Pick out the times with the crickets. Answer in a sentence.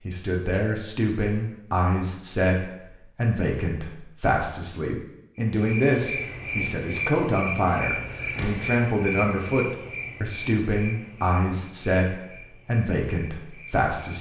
You can hear the crickets from 5.5 to 14.1 s.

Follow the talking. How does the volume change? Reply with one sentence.
The volume of the talking stays about the same.